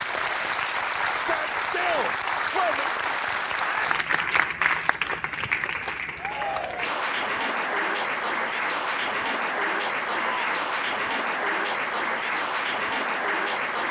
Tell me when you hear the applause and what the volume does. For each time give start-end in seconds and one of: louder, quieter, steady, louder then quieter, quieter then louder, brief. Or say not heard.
0.0-13.8 steady.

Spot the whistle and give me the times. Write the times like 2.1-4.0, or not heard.
not heard.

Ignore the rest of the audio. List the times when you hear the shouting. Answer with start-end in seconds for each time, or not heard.
1.1-2.9, 6.2-7.0, 10.1-10.5.